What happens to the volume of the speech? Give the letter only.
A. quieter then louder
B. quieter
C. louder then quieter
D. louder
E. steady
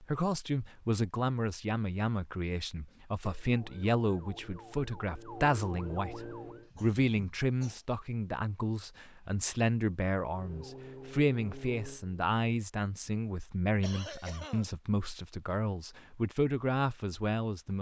E.